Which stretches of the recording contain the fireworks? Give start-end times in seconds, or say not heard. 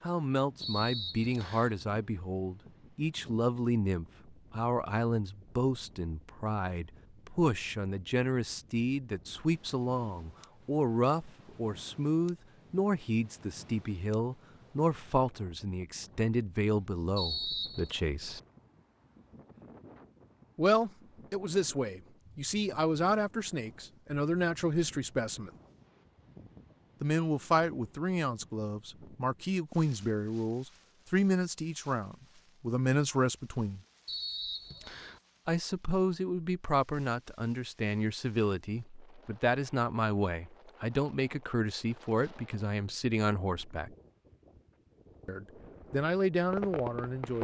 45.5-47.3.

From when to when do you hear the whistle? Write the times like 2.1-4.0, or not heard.
0.6-1.8, 17.1-18.0, 34.0-35.2.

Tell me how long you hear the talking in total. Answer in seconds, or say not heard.
41 s.